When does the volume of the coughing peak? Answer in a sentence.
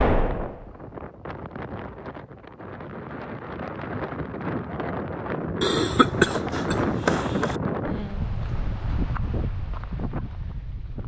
The loudest moment of the coughing is at 6 seconds.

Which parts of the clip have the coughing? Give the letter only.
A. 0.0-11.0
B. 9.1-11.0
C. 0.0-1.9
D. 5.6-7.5
D.